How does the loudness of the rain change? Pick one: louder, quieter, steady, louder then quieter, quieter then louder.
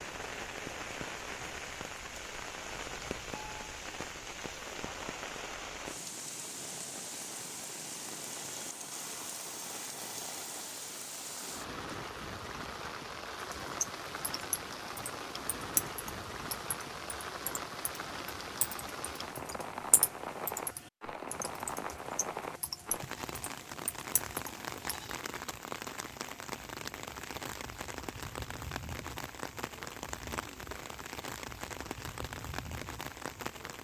steady.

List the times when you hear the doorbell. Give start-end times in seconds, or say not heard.
2.7-3.9.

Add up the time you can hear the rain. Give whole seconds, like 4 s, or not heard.
34 s.